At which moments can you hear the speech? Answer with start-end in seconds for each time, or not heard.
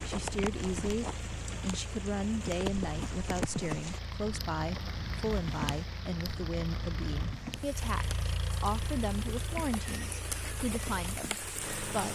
0.0-12.0.